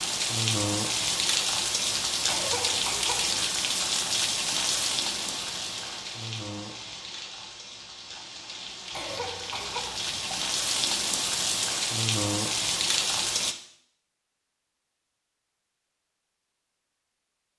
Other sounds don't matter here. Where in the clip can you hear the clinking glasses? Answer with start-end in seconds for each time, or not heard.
not heard.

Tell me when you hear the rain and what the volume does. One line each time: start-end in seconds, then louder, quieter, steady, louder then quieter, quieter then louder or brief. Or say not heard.
0.0-13.6 quieter then louder.